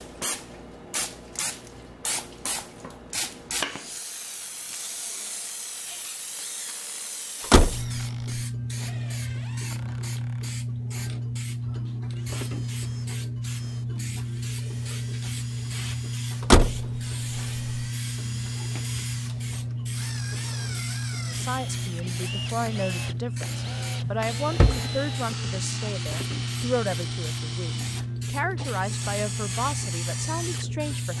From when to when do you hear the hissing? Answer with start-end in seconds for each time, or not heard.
0.0-31.1.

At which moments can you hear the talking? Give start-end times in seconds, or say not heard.
21.2-31.1.